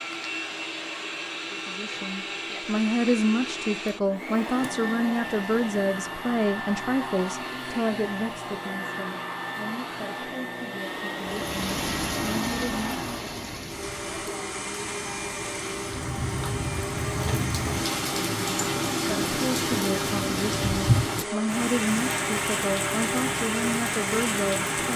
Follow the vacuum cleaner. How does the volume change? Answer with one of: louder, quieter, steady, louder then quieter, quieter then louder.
steady.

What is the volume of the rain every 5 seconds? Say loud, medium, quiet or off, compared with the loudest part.
off, off, medium, loud, loud.